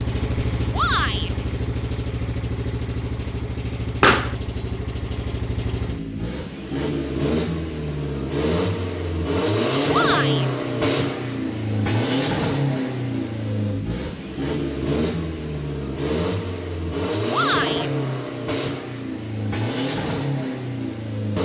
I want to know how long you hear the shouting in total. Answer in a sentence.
You can hear the shouting for 2 seconds altogether.